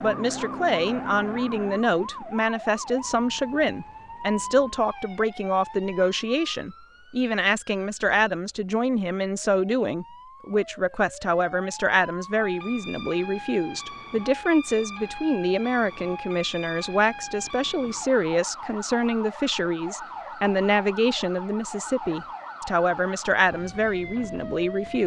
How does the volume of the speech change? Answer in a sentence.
The volume of the speech stays about the same.